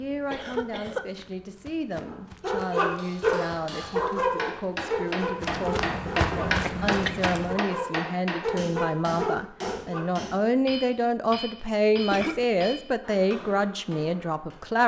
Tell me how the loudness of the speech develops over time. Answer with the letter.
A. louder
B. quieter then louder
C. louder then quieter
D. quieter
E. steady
A.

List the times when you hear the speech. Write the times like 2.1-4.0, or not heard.
0.0-14.8.